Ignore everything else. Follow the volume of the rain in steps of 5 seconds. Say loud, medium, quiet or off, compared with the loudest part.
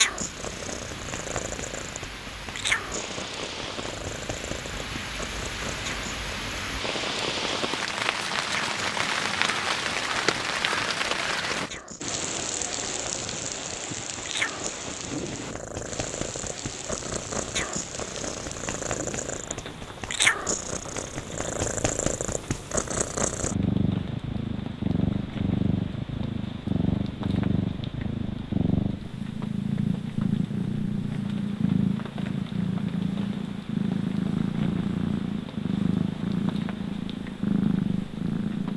medium, loud, loud, medium, quiet, quiet, quiet, quiet.